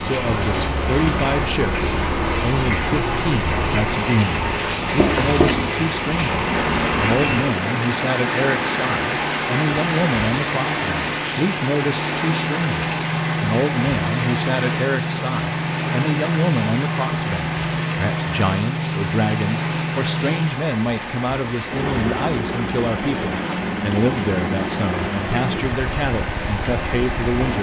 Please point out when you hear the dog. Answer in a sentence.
The dog can't be heard in this clip.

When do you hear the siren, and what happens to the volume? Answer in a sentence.
The siren can't be heard in this clip.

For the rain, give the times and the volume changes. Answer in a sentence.
The rain can be heard from 0.0 to 27.5 s, getting quieter.